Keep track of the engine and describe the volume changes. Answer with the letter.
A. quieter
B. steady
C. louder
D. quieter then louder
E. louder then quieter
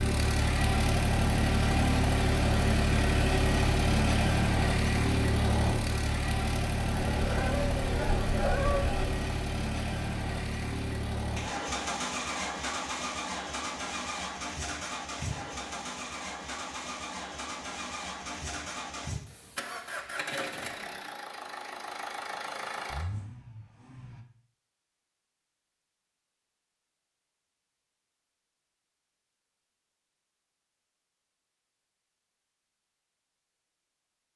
A.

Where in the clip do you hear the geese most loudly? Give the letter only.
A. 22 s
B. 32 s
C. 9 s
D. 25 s
C.